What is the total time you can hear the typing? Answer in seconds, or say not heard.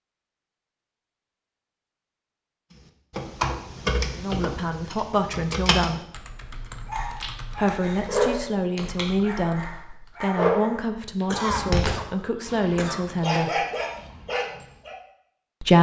7 s.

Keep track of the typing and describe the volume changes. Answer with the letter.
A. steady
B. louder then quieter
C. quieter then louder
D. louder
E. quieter
E.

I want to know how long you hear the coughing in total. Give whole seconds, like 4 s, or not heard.
2 s.